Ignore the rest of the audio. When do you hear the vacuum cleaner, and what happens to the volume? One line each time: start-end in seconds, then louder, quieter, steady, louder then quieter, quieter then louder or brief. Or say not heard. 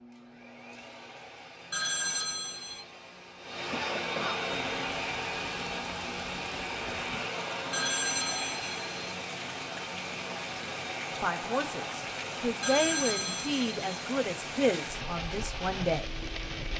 0.0-16.7 louder then quieter.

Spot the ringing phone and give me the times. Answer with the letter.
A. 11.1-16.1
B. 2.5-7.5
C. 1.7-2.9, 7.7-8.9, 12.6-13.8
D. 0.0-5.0
C.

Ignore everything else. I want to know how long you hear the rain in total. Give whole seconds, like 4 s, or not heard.
12 s.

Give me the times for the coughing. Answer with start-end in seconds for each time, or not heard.
3.7-4.4.